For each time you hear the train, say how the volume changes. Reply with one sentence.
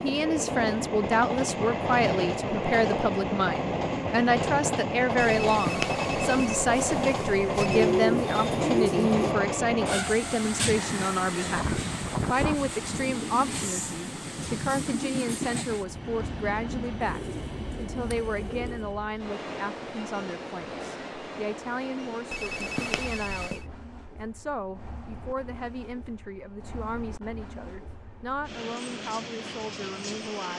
You can hear the train from 0.0 to 30.5 s, getting quieter.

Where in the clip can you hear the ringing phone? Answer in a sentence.
You can hear the ringing phone from 5.2 to 7.7 s and from 22.3 to 23.6 s.